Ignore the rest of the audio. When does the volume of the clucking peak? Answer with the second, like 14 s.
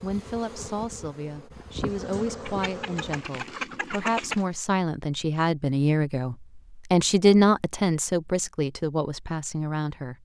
4 s.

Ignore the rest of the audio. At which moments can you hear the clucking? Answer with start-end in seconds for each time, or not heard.
2.5-4.5.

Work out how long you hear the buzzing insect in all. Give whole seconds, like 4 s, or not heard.
3 s.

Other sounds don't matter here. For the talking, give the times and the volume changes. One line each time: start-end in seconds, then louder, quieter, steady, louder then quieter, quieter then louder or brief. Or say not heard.
0.0-10.2 louder then quieter.